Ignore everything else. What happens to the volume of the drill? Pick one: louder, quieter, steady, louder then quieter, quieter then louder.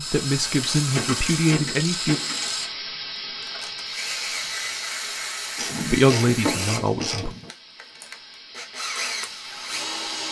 steady.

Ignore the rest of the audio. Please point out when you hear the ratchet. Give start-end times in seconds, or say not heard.
0.6-2.6, 5.5-7.5.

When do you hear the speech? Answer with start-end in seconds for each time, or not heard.
0.0-2.2, 5.9-7.3.